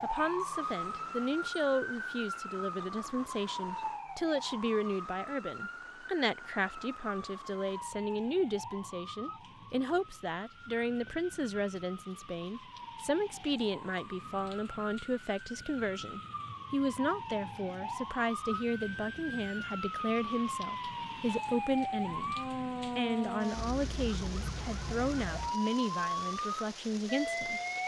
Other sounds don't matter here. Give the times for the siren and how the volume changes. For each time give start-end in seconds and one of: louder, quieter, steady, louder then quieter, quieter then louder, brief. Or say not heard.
0.0-27.8 quieter then louder.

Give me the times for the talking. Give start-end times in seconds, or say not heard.
0.0-22.4, 22.9-27.6.